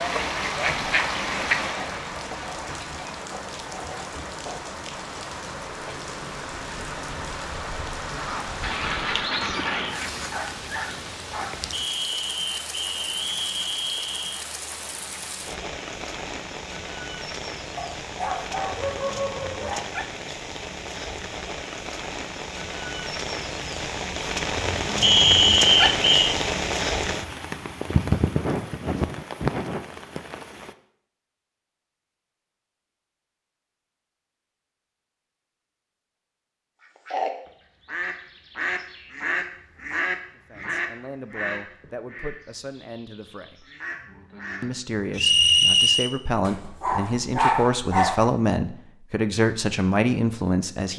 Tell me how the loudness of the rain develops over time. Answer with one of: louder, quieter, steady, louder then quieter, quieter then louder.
louder.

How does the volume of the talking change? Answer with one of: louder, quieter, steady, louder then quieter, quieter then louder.
louder.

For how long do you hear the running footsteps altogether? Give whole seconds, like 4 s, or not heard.
not heard.